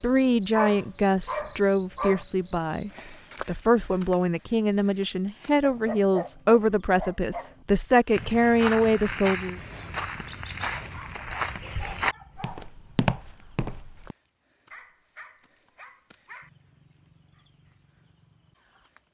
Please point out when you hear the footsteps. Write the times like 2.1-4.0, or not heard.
8.1-14.2.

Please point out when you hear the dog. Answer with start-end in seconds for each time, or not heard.
0.5-2.2, 5.6-7.7, 10.7-12.7, 14.7-16.5.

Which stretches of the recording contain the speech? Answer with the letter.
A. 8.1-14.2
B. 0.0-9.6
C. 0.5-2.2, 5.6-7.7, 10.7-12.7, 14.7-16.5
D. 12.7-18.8
B.